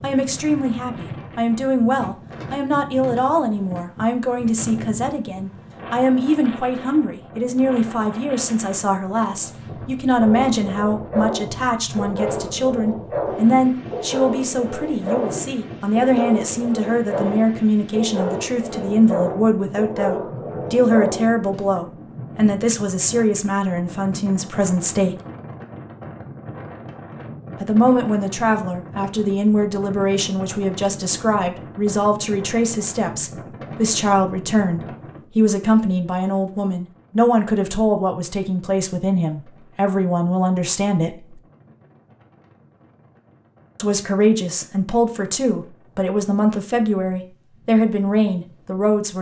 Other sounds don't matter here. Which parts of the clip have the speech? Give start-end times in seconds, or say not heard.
0.0-25.1, 27.6-41.4, 43.8-49.1.